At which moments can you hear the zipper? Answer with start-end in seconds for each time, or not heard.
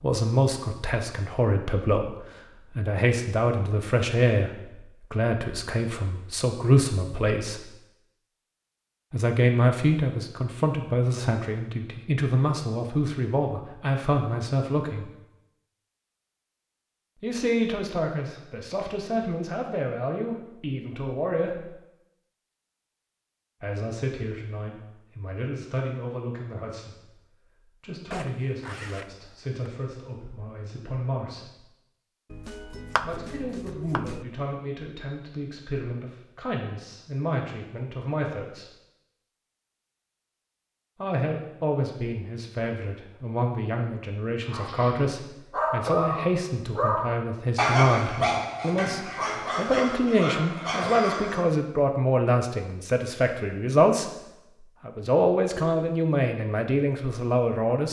28.1-29.7.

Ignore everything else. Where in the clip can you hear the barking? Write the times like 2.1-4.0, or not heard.
44.5-51.5.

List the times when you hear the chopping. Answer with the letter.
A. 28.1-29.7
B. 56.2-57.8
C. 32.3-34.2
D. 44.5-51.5
C.